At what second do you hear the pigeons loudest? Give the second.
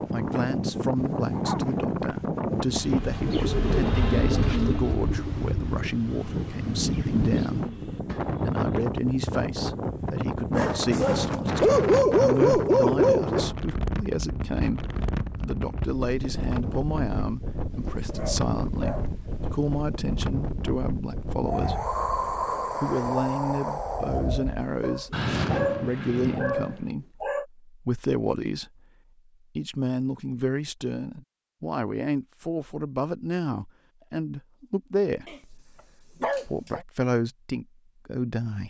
4 s.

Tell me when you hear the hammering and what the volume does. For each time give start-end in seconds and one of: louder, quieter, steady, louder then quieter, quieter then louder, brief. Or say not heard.
not heard.